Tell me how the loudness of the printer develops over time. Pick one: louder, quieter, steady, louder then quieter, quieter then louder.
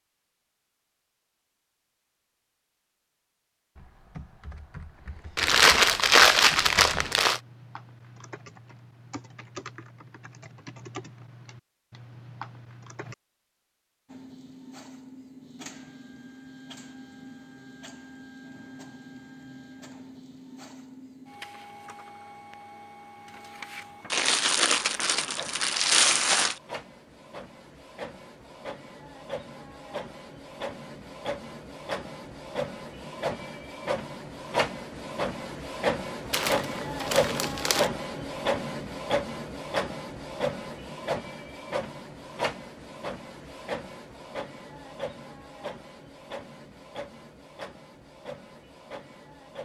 louder then quieter.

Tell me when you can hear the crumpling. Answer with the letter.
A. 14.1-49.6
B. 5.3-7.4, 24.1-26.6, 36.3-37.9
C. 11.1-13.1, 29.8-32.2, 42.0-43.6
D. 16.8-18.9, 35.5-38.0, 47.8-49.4
B.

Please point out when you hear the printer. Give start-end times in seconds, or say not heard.
14.1-49.6.